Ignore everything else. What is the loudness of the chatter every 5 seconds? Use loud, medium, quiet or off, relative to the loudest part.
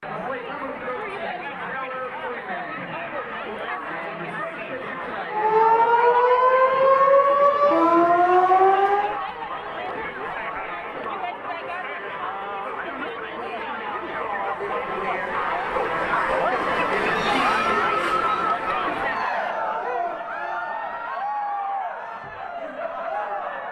medium, medium, medium, loud, medium.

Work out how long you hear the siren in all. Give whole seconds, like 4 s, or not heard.
4 s.